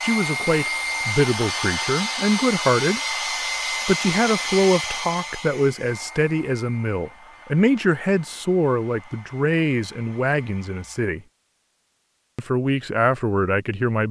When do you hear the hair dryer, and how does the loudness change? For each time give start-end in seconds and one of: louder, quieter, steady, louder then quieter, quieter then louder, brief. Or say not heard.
0.0-11.2 quieter.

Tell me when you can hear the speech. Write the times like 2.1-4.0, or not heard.
0.0-3.0, 3.9-11.2, 12.3-14.0.